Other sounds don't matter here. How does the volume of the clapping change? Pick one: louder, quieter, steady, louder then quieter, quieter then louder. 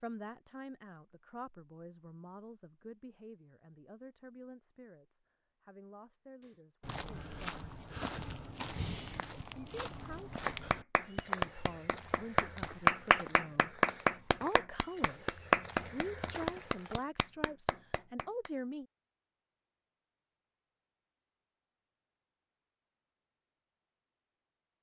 louder then quieter.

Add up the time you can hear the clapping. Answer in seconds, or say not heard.
8 s.